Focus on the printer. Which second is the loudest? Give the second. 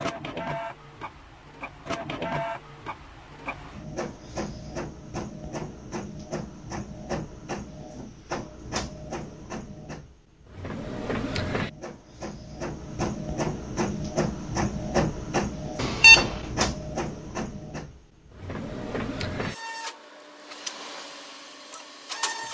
15 s.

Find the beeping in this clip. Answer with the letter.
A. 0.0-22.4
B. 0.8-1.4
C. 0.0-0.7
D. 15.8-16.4
D.